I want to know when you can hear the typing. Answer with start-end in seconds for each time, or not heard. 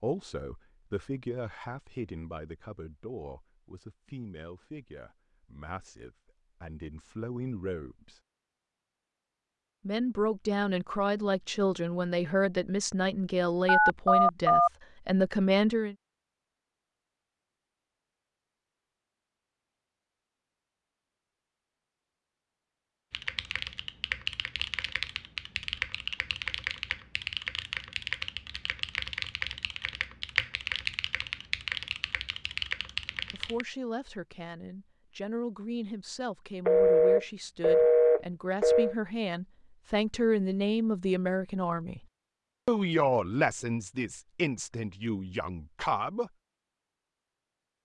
23.1-33.6.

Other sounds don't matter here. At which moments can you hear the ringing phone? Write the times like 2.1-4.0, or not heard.
13.7-14.7, 36.6-39.0.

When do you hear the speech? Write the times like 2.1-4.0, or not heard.
0.0-8.2, 9.8-15.9, 33.3-42.0, 42.6-46.3.